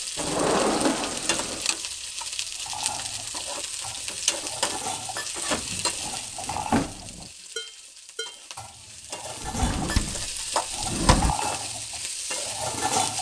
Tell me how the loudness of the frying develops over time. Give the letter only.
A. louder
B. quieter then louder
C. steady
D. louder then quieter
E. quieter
B.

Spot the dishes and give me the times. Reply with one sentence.
The dishes can be heard from 2.5 to 13.1 s.